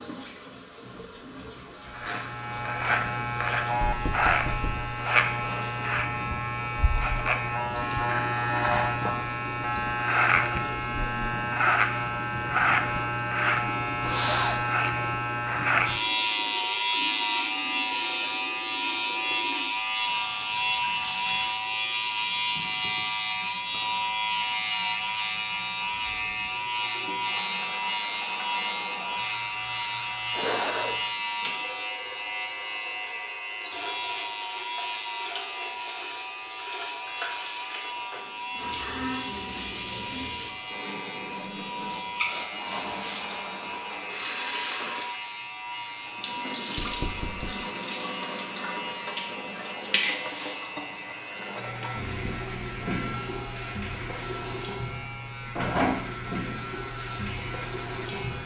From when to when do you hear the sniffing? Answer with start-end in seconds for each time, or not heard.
14.0-14.6, 30.3-31.0, 41.9-43.3.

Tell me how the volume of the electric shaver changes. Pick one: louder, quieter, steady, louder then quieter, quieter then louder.
quieter.